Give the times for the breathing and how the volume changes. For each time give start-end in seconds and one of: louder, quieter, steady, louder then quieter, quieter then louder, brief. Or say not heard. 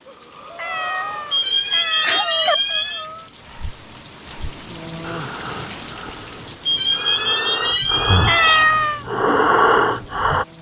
0.1-10.4 louder.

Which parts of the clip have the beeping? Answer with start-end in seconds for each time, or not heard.
1.3-3.0, 6.7-8.7.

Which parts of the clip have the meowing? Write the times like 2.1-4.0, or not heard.
0.6-2.5, 8.2-9.1.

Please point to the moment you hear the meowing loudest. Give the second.
9 s.